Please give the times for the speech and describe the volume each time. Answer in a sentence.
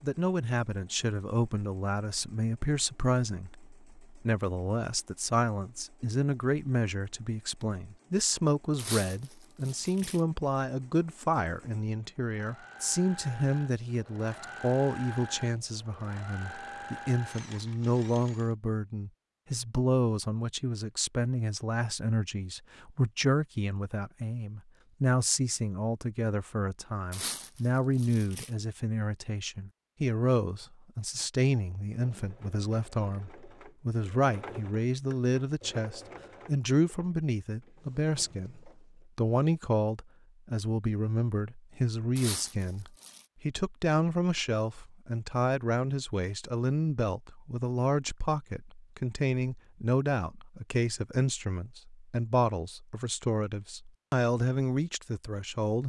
You can hear the speech from 0.0 to 55.8 s, at a steady volume.